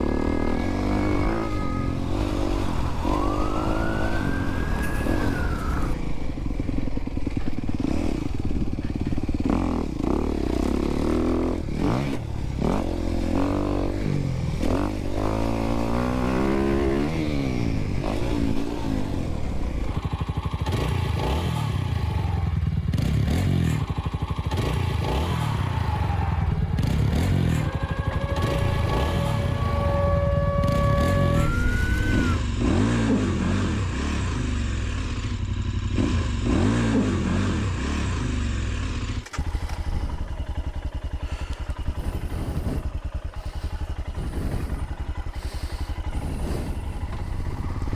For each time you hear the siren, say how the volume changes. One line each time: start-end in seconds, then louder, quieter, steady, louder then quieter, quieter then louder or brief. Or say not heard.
0.0-6.0 louder
25.2-32.4 louder.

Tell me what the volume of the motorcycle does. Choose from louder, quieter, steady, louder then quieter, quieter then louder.
quieter.